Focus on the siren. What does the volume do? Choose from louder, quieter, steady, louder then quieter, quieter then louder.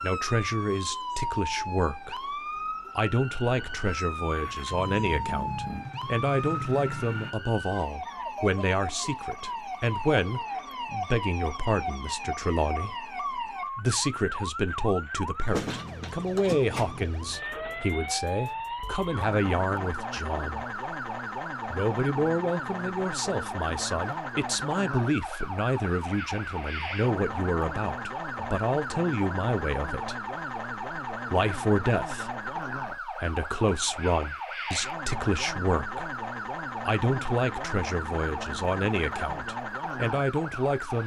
steady.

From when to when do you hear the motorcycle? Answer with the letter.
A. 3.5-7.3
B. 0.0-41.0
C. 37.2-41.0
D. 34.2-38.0
A.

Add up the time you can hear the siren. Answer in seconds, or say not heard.
41 s.